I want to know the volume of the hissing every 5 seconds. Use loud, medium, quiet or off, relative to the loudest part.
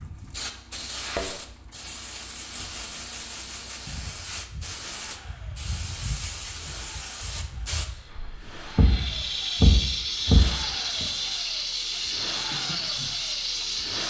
medium, medium, loud.